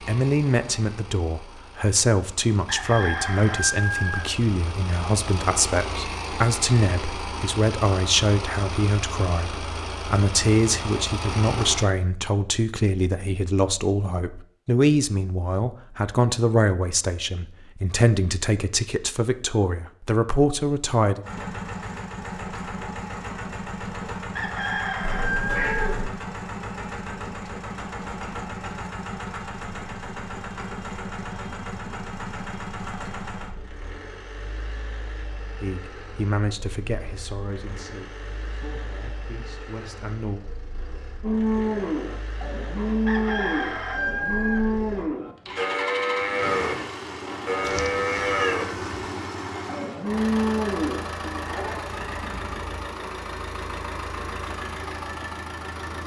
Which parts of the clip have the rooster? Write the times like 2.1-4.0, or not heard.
2.6-4.3, 24.4-26.0, 43.0-44.7.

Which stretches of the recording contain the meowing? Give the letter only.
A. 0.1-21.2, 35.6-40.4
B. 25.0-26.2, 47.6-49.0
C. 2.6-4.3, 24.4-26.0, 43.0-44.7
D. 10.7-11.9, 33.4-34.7
B.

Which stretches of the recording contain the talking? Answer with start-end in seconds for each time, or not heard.
0.1-21.2, 35.6-40.4.